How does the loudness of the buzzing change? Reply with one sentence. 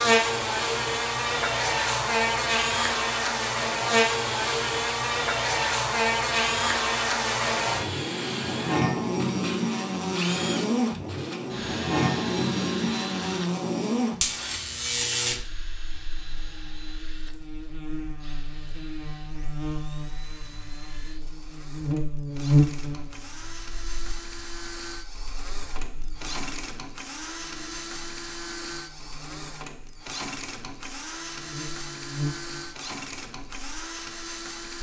The volume of the buzzing goes down.